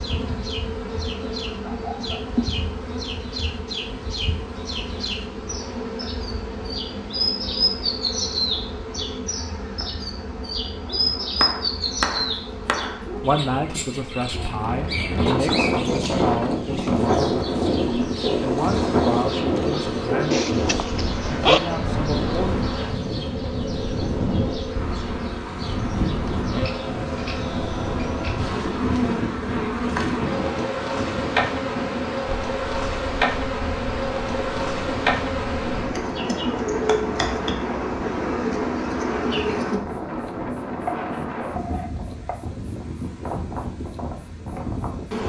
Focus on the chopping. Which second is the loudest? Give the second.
12 s.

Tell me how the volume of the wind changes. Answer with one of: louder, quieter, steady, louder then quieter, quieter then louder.
quieter.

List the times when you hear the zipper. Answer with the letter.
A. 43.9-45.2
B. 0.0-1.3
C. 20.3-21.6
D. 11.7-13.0
C.